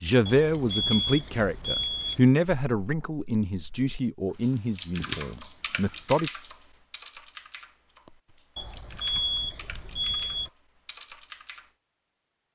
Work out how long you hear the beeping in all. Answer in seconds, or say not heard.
4 s.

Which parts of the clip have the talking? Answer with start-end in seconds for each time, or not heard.
0.0-6.3.